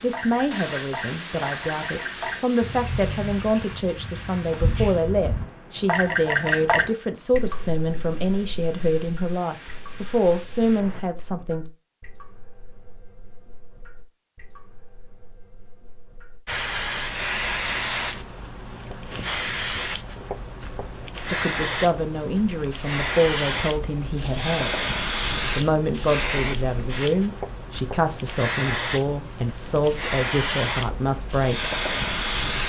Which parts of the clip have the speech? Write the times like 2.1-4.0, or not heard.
0.0-11.7, 21.3-24.9, 25.6-31.8.